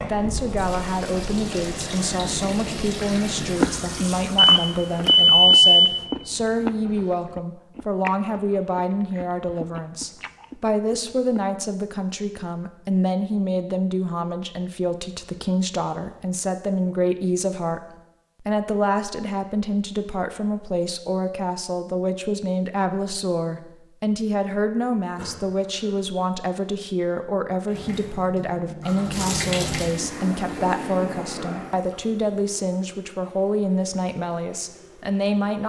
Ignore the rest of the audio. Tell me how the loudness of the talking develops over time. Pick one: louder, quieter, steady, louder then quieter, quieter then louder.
steady.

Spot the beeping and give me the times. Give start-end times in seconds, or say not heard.
4.5-6.0.